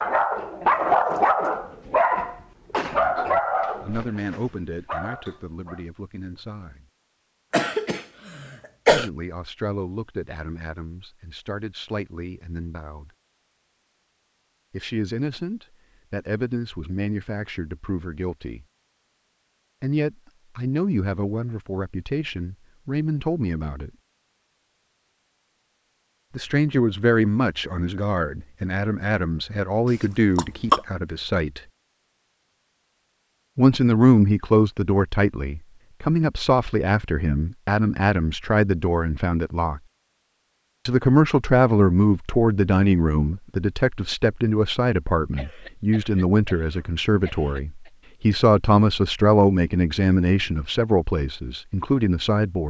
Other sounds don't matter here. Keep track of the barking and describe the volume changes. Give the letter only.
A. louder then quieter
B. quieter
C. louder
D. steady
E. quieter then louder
B.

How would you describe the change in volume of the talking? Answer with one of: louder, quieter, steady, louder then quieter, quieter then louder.
louder.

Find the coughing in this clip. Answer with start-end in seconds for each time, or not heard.
7.5-9.1, 30.4-30.8, 45.4-47.9.